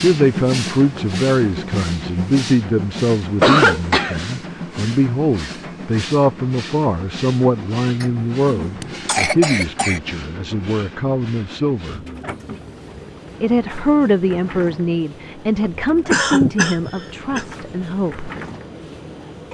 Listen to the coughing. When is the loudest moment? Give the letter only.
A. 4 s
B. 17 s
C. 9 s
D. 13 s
A.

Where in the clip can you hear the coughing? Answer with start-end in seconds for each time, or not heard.
3.4-4.3, 8.0-10.0, 15.6-17.4.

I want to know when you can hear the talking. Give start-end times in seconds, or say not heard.
0.0-12.0, 13.4-18.3.